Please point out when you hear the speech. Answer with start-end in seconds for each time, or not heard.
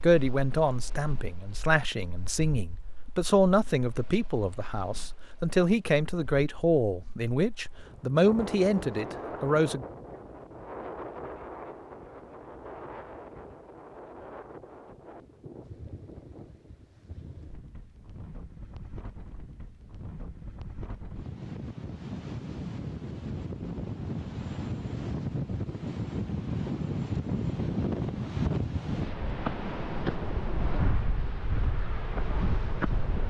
0.0-9.8.